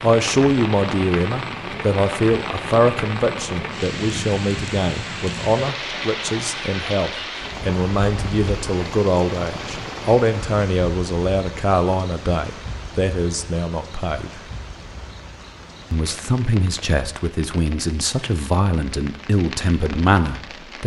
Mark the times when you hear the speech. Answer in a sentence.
The speech can be heard from 0.0 to 14.4 s and from 15.9 to 20.8 s.